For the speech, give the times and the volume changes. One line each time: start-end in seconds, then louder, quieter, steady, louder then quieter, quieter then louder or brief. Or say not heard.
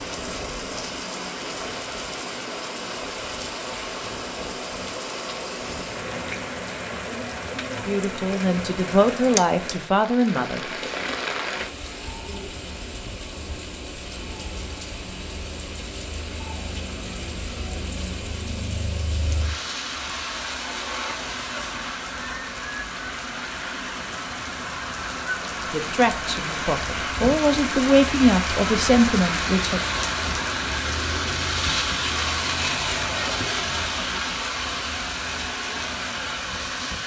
7.8-10.6 brief
25.7-29.8 louder.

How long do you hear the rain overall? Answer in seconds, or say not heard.
37 s.